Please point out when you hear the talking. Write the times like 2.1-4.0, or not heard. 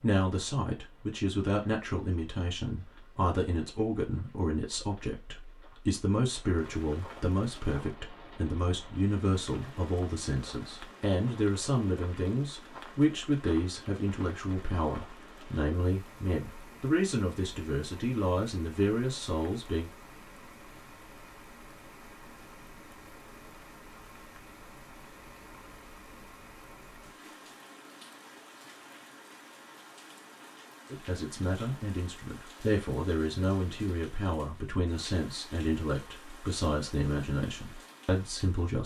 0.0-19.9, 30.9-38.8.